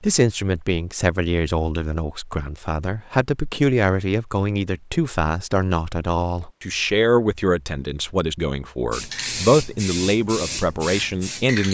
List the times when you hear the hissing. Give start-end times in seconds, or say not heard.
8.9-11.6.